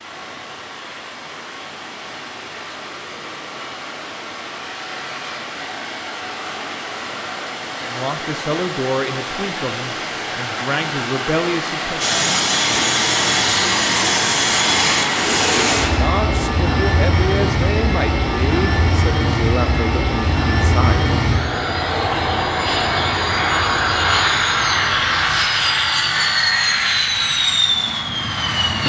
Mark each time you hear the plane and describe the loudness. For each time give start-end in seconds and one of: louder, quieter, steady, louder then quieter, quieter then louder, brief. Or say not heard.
12.0-28.8 steady.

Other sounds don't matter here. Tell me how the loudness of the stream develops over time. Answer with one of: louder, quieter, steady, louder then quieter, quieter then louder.
louder.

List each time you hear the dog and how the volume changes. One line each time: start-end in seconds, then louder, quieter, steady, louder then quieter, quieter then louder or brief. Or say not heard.
not heard.